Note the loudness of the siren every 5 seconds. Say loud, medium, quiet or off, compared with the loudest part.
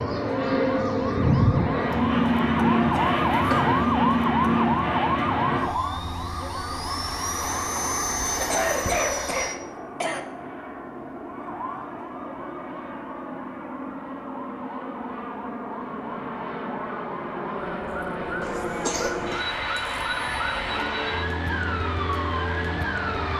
loud, loud, quiet, medium, loud.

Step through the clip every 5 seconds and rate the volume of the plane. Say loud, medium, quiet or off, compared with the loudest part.
loud, medium, quiet, medium, medium.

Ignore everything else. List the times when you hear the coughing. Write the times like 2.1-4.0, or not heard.
2.9-3.9, 8.3-10.2, 18.4-19.4.